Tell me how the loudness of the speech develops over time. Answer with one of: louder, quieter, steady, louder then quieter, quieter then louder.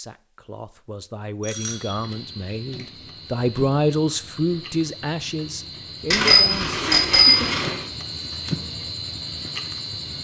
louder then quieter.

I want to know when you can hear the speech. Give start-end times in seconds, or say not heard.
0.0-6.8.